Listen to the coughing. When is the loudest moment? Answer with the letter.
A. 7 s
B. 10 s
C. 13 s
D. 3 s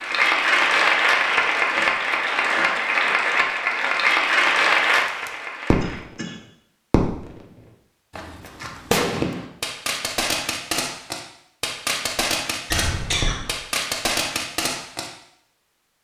C.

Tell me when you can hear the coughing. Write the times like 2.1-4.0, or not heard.
1.7-3.1, 5.8-6.3, 12.7-13.6.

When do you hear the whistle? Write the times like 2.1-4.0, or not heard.
not heard.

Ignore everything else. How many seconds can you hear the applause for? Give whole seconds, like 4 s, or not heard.
6 s.